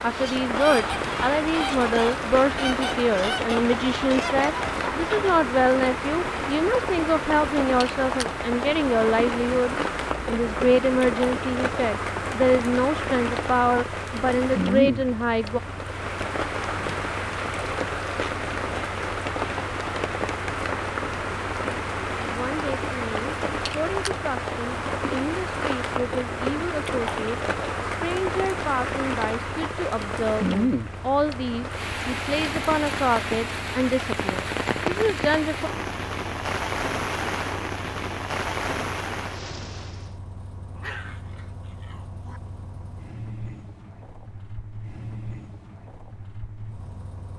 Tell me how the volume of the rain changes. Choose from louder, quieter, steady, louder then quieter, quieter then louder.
steady.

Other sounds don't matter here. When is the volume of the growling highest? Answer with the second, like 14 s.
41 s.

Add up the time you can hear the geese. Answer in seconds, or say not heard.
5 s.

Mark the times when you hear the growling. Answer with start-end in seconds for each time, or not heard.
40.8-42.4.